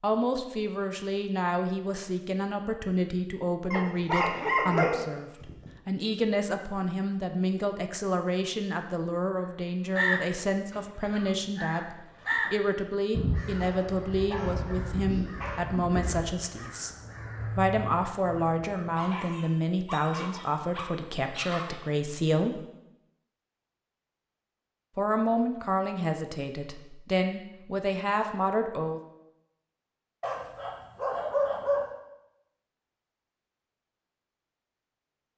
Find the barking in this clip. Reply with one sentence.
The barking can be heard from 3.7 to 5.7 s, from 13.6 to 15.6 s, from 18.9 to 21.8 s and from 30.2 to 31.9 s.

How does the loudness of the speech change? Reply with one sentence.
The loudness of the speech stays about the same.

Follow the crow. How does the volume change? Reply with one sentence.
The volume of the crow goes up, then down.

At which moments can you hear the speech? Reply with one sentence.
The speech can be heard from 0.0 to 16.9 s, from 17.6 to 22.6 s and from 24.9 to 29.0 s.